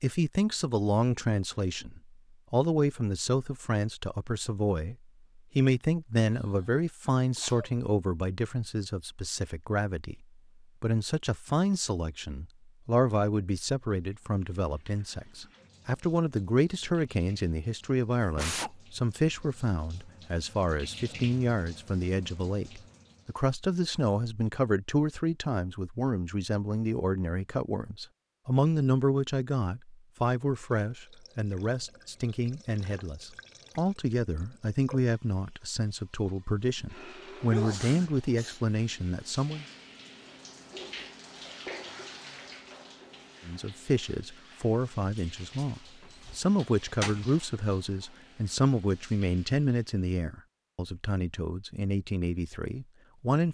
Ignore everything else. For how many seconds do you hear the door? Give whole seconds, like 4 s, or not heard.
2 s.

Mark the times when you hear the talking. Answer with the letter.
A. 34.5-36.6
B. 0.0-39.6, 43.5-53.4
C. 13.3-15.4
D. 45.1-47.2
B.